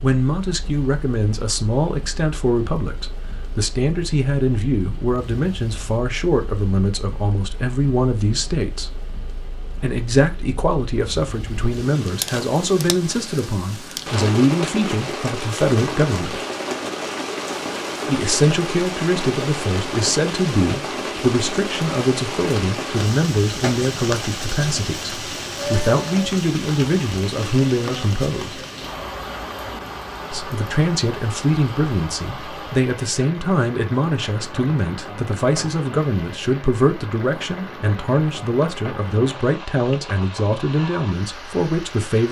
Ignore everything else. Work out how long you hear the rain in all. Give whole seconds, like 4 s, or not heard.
42 s.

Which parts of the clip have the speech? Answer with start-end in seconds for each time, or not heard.
0.0-9.0, 9.8-16.4, 18.1-28.6, 30.3-42.2.